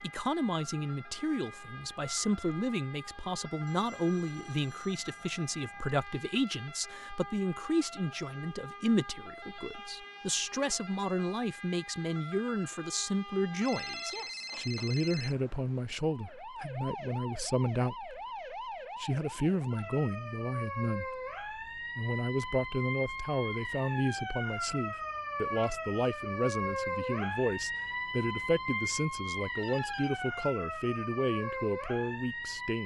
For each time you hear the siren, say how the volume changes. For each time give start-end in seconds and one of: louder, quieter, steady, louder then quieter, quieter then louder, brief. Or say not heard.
0.0-32.8 louder.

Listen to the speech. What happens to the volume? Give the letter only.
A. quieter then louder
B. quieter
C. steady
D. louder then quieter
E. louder
C.